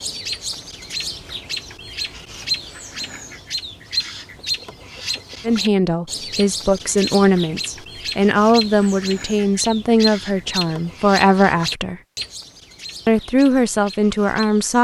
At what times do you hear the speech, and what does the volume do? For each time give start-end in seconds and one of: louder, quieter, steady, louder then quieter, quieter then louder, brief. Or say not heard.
5.5-12.0 steady
13.1-14.7 brief.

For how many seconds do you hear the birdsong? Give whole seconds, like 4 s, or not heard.
15 s.